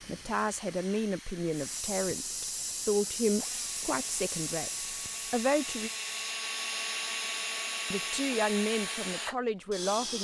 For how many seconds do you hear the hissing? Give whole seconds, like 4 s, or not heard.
5 s.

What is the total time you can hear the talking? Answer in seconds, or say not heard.
8 s.